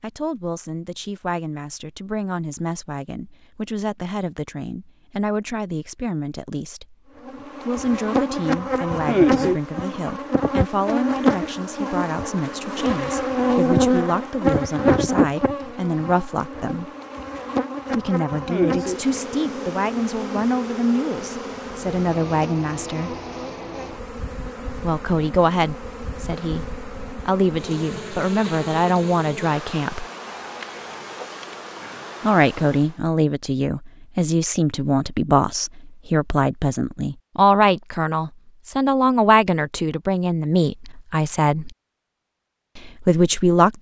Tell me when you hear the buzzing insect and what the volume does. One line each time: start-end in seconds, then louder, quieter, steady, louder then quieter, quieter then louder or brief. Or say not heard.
7.2-33.0 quieter.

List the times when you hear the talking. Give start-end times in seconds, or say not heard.
0.0-7.0, 7.7-16.9, 17.9-23.1, 24.8-30.1, 32.2-41.7, 42.8-43.7.